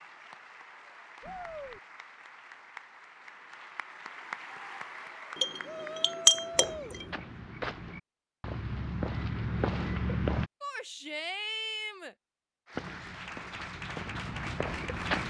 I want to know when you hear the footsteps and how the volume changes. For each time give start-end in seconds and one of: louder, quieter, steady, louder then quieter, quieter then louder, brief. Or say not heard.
6.5-10.5 louder
12.8-15.2 brief.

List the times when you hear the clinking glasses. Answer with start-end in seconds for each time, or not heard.
5.3-7.0.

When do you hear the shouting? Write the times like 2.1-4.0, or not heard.
1.2-1.8, 5.6-7.0, 10.6-12.2.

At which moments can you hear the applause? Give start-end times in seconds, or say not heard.
0.0-6.8, 12.7-15.2.